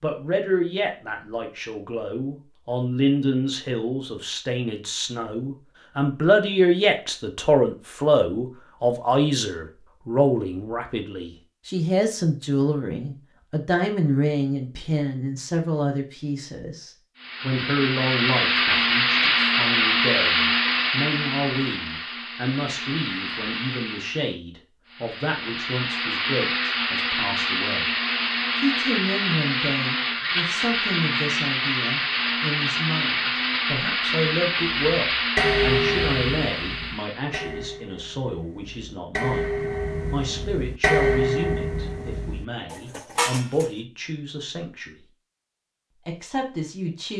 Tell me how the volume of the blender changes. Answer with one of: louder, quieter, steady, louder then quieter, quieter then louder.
quieter then louder.